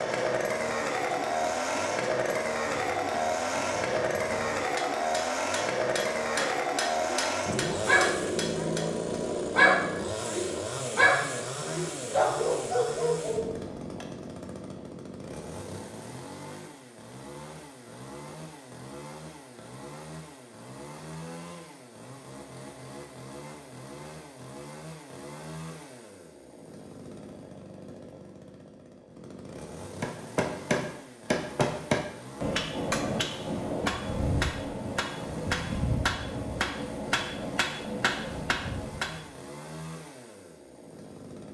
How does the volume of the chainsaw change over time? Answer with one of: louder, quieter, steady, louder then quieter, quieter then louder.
quieter.